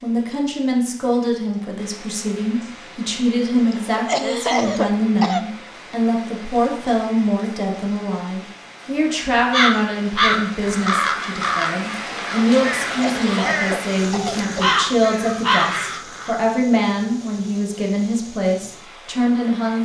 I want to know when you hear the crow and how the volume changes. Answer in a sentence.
The crow can be heard from 9.5 to 16.3 s, getting quieter then louder.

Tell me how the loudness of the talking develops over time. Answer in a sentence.
The volume of the talking stays about the same.